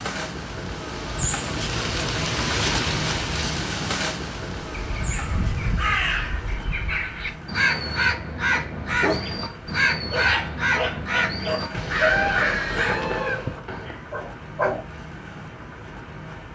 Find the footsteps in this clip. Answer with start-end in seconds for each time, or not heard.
not heard.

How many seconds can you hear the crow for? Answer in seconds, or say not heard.
9 s.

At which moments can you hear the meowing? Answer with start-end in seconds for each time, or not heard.
not heard.